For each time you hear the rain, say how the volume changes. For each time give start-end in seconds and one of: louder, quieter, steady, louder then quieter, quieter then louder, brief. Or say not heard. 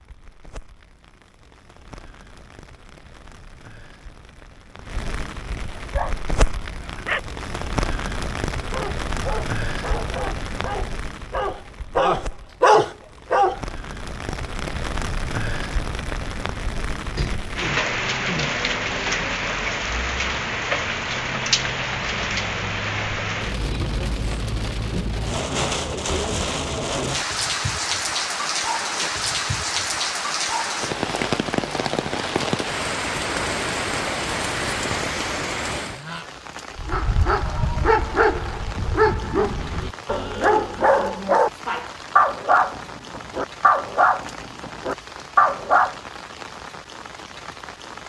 0.0-48.0 louder then quieter.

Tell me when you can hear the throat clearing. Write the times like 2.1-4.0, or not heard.
17.1-18.6.